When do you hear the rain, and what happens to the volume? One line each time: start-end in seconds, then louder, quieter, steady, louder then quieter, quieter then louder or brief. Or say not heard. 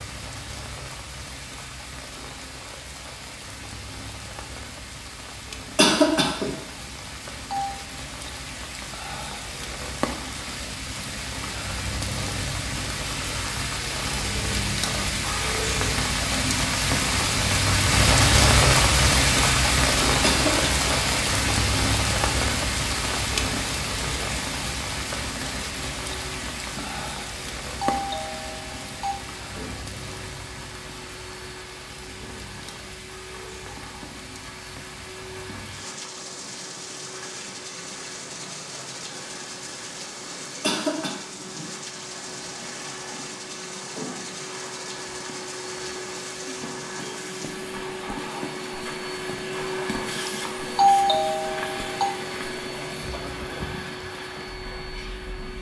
0.0-55.5 louder then quieter.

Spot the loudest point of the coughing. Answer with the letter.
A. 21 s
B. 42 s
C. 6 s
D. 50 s
C.